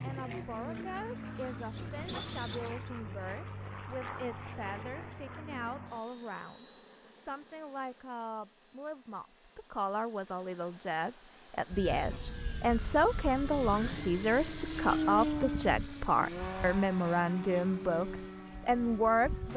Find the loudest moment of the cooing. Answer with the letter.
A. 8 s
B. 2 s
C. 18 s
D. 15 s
B.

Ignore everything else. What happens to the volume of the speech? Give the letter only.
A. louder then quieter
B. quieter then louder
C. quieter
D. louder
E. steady
D.